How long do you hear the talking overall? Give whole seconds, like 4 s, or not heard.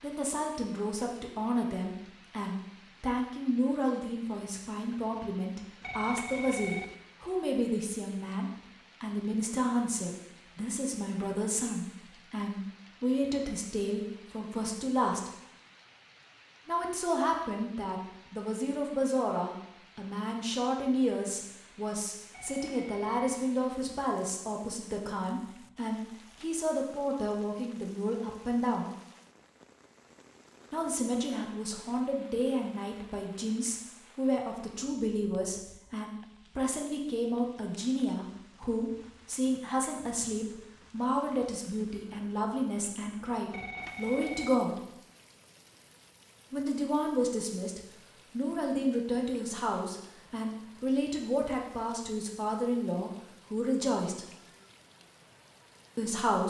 50 s.